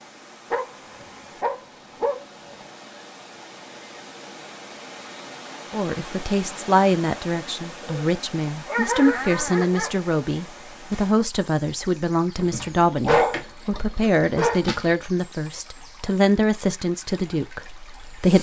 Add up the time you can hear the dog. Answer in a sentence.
The dog can be heard for 6 seconds in total.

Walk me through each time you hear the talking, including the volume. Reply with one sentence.
You can hear the talking from 5.7 to 18.3 s, at a steady volume.